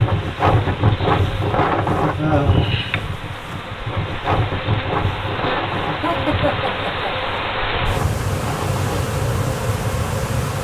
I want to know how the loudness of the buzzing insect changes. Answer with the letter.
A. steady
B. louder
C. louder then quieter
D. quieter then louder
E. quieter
B.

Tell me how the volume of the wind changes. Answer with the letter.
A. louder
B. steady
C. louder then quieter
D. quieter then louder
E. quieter
E.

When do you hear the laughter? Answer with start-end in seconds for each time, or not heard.
2.1-2.7, 6.0-7.1.